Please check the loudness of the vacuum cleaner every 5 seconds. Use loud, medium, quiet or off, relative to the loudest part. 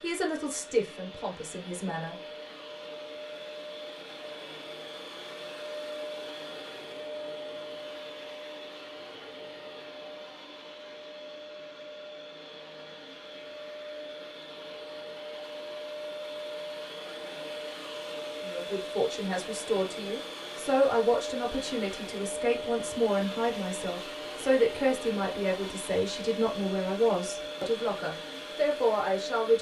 medium, loud, medium, loud, loud, loud.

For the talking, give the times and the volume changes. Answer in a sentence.
You can hear the talking briefly from 0.0 to 2.1 s; and from 18.4 to 29.5 s, at a steady volume.